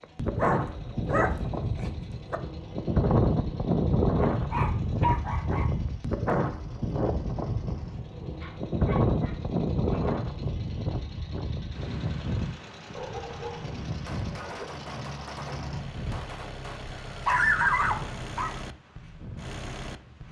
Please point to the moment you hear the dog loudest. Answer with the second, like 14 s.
18 s.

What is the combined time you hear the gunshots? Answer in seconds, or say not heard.
3 s.